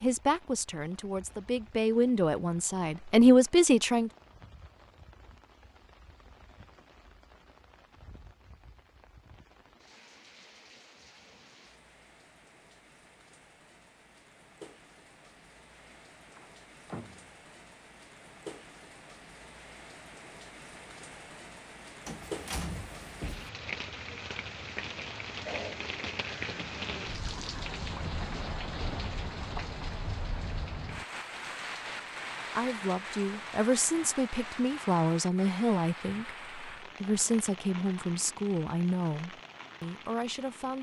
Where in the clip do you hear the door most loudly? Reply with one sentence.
The loudest moment of the door is at 23 seconds.